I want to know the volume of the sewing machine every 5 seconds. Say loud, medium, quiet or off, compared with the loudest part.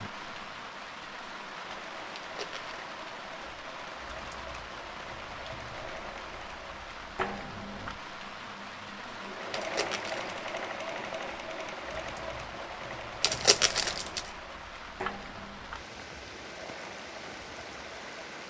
medium, loud, loud, medium.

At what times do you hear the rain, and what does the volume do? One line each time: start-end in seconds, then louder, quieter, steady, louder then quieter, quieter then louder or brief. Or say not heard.
0.0-18.4 steady.